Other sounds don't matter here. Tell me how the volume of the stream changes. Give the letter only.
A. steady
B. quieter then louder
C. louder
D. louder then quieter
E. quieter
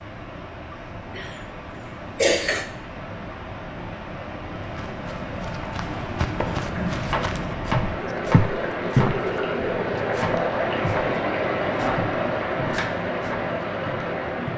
C.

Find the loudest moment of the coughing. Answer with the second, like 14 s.
2 s.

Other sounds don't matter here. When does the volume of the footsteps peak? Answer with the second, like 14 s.
9 s.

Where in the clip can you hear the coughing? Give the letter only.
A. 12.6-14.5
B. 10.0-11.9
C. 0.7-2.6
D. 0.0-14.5
C.